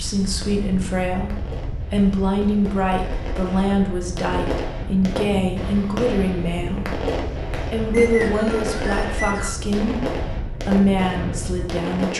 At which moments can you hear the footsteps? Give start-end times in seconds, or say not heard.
not heard.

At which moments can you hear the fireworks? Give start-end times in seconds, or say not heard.
0.1-12.1.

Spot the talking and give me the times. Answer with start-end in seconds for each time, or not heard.
0.0-7.0, 7.7-12.1.